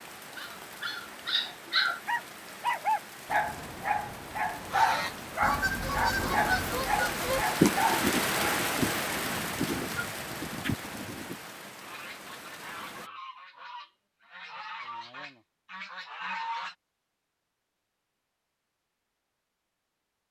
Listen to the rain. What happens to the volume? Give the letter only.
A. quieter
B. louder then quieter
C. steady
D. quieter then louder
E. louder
B.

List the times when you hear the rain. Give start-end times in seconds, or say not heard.
0.0-13.1.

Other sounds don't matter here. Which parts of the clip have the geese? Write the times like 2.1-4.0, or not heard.
4.7-16.8.